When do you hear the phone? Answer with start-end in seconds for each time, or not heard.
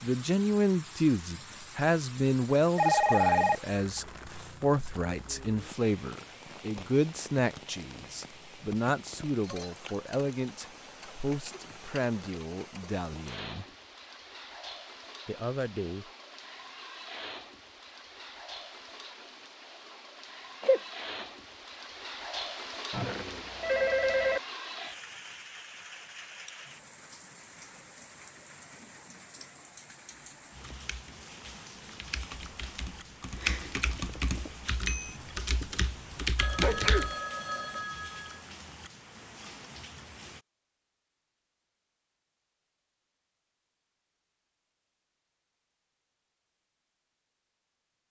2.8-4.0, 22.9-24.4, 36.4-38.4.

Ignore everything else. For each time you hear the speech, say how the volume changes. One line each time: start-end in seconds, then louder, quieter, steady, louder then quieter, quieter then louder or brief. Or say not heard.
0.0-13.7 quieter
15.2-16.1 brief.